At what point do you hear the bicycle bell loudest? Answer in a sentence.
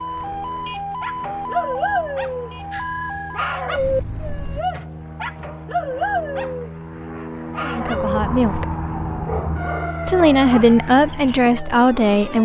The volume of the bicycle bell peaks at 3 seconds.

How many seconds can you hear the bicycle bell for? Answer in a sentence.
You can hear the bicycle bell for 2 seconds altogether.